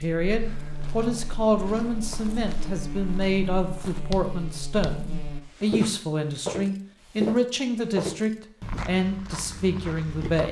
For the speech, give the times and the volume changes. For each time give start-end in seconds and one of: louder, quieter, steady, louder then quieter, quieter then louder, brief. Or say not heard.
0.0-10.4 steady.